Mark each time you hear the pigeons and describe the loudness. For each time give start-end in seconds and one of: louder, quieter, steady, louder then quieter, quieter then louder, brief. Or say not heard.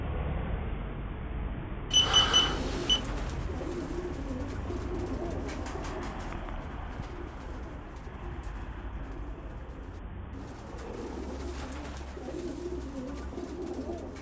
2.4-14.1 quieter then louder.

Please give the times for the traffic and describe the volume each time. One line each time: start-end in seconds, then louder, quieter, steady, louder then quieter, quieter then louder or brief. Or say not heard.
0.0-14.1 quieter.